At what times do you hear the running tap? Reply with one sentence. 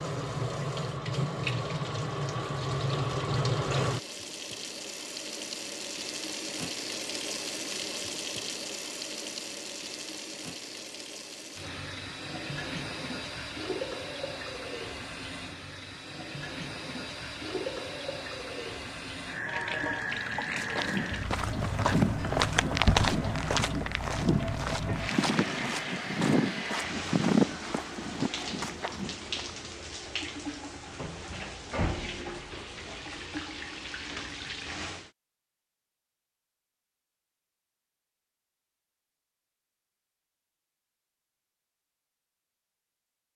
You can hear the running tap from 0.0 to 35.1 s.